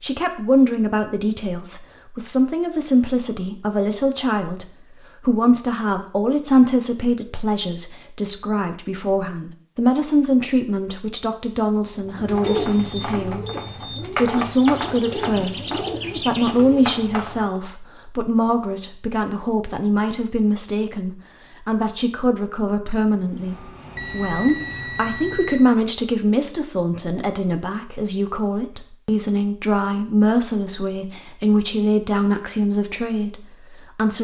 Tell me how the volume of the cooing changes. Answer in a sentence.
The loudness of the cooing stays about the same.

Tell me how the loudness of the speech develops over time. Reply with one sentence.
The volume of the speech stays about the same.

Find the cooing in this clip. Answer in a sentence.
The cooing can be heard from 11.9 to 17.5 s.